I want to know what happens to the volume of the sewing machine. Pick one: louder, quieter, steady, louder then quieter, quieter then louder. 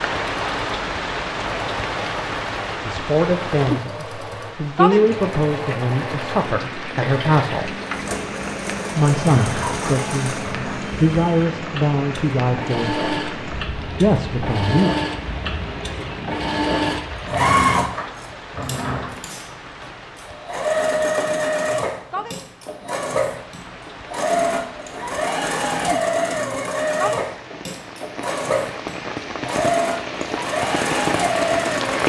louder.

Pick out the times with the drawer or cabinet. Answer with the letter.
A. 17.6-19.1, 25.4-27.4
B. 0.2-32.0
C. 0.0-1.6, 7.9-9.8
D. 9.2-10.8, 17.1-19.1
D.